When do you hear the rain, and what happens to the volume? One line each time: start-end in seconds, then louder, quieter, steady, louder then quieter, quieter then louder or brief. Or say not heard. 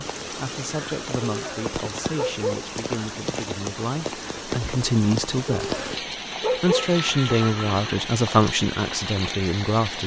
0.0-10.0 steady.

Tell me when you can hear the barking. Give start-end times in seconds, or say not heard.
1.2-2.7, 5.5-7.3.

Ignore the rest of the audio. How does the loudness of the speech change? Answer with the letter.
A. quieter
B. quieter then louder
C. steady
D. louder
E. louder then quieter
D.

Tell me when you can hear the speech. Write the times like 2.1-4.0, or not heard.
0.2-5.8, 6.4-10.0.